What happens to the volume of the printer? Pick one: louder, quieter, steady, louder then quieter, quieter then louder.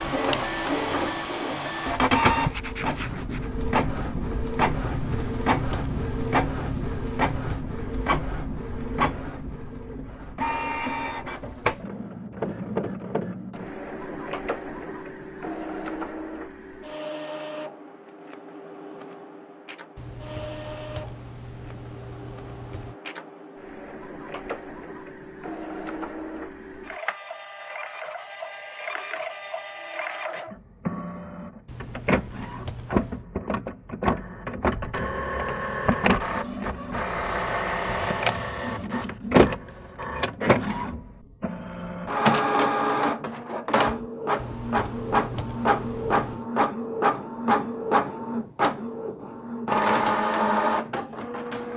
quieter then louder.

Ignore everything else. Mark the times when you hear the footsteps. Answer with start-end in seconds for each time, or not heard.
not heard.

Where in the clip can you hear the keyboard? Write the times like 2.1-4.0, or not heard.
4.9-7.7, 19.9-22.9, 31.6-33.2, 44.4-46.5.